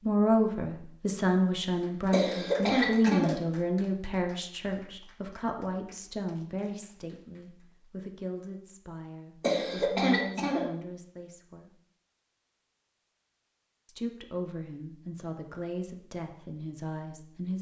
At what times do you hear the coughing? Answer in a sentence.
You can hear the coughing from 2.1 to 3.4 s and from 9.4 to 10.7 s.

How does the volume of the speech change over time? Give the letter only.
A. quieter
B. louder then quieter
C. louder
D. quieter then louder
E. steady
A.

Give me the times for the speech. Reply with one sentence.
You can hear the speech from 0.0 to 11.7 s and from 13.8 to 17.5 s.